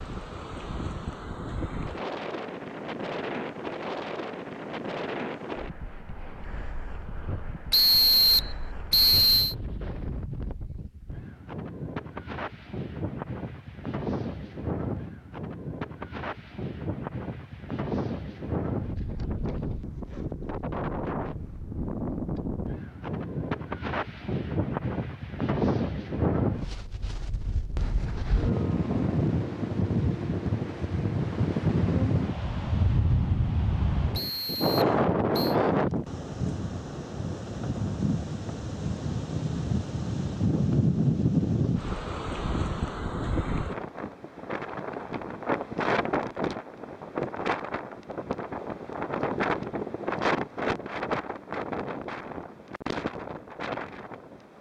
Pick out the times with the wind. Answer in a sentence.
The wind can be heard from 0.0 to 54.5 s.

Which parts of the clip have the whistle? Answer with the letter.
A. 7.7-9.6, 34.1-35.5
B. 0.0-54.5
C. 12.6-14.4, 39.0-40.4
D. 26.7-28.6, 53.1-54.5
A.